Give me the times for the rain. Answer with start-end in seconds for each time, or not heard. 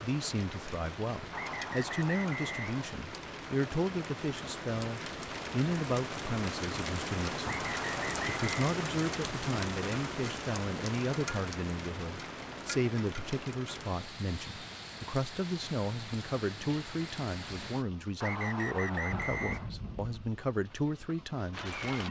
0.0-22.0.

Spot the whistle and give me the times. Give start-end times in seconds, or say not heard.
1.3-2.9, 7.4-8.7, 18.2-19.7.